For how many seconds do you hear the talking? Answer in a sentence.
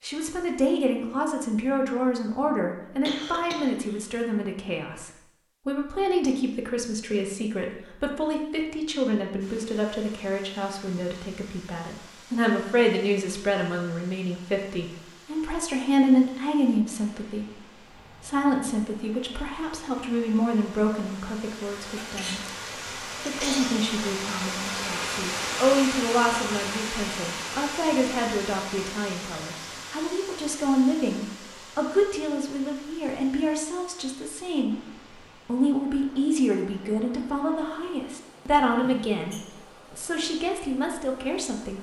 You can hear the talking for 40 seconds altogether.